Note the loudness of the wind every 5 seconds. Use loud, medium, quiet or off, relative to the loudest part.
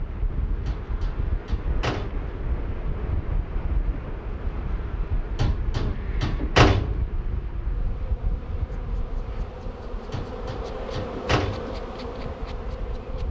loud, loud, medium.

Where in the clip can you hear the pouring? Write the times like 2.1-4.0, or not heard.
not heard.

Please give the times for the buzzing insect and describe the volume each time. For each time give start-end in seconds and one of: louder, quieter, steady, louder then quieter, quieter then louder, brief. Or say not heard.
0.0-13.2 louder.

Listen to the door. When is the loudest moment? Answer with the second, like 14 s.
7 s.